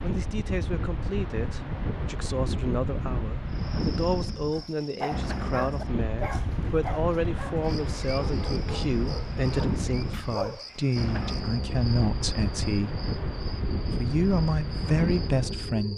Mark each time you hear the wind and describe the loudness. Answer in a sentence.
The wind can be heard from 0.0 to 15.9 s, at a steady volume.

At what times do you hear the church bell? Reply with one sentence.
The church bell can't be heard in this clip.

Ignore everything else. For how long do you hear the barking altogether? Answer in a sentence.
You can hear the barking for 6 seconds altogether.